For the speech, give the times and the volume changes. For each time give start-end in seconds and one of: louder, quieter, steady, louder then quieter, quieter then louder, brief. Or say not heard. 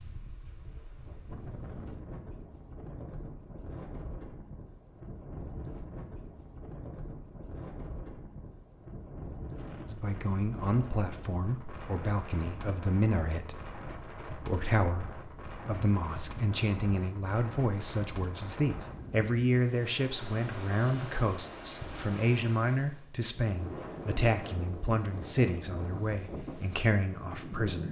9.9-27.8 steady.